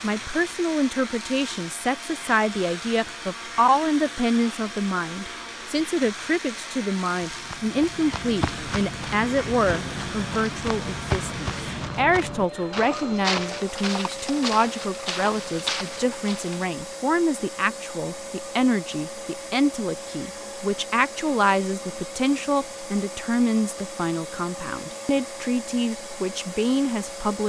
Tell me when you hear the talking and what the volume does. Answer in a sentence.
You can hear the talking from 0.0 to 27.4 s, at a steady volume.